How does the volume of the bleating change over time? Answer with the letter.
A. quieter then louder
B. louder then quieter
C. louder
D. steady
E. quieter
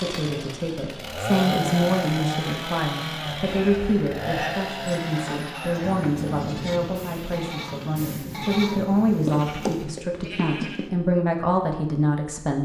A.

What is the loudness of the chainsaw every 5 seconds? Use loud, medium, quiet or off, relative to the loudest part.
loud, medium, off.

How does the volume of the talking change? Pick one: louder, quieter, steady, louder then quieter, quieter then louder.
steady.